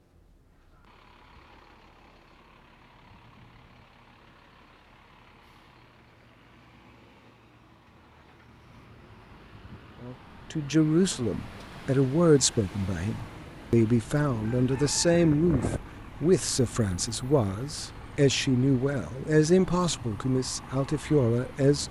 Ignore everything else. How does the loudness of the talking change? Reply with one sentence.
The loudness of the talking stays about the same.